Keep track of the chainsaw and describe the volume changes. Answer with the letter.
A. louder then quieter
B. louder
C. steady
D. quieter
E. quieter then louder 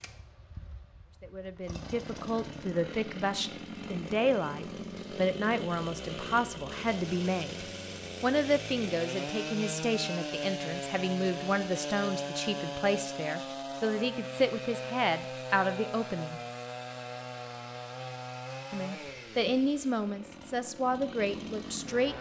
A.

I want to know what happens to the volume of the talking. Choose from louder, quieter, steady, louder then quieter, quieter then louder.
steady.